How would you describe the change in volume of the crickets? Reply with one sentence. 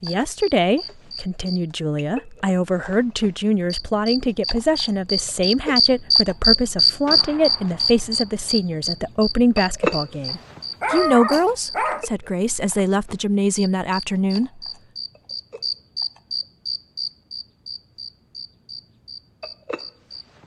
The volume of the crickets goes up, then down.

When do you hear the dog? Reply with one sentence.
You can hear the dog from 10.2 to 12.1 s.